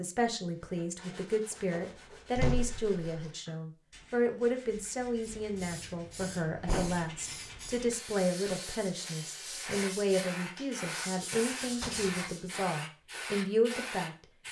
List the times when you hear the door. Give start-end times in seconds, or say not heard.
1.5-3.3, 6.2-7.1, 11.7-12.3.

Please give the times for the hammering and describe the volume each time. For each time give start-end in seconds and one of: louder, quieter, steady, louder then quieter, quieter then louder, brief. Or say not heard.
not heard.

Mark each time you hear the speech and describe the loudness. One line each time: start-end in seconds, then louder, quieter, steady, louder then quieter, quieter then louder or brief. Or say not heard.
0.0-14.2 steady.